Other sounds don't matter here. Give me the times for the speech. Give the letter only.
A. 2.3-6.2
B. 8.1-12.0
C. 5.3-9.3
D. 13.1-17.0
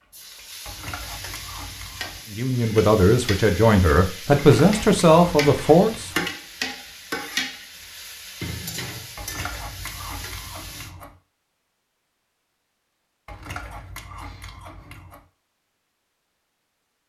A.